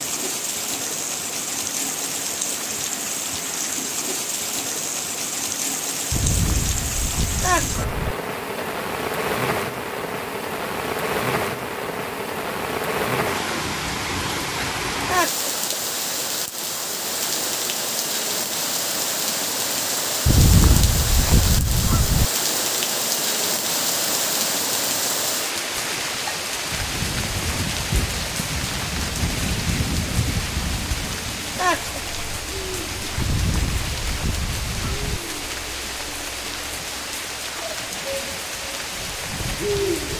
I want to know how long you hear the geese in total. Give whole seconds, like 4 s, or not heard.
6 s.